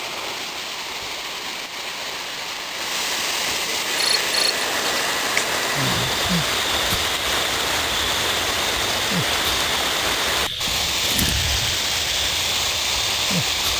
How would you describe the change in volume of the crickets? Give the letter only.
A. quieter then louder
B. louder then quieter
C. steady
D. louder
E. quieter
C.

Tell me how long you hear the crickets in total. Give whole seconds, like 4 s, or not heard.
10 s.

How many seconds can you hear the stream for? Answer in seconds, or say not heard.
14 s.